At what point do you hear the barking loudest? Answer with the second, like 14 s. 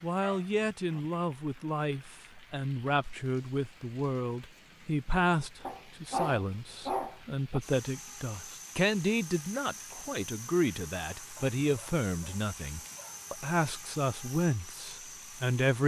6 s.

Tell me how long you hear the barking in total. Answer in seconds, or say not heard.
5 s.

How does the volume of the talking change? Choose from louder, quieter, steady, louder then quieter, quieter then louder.
steady.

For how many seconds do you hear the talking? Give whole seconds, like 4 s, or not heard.
16 s.